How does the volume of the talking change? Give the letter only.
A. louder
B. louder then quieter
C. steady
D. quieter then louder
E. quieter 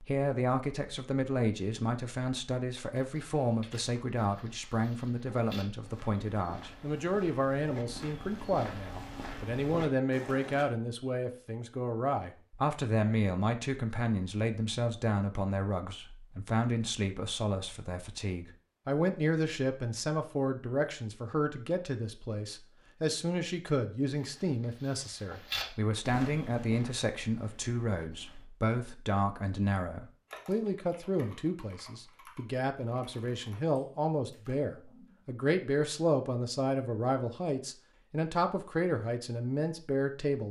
C.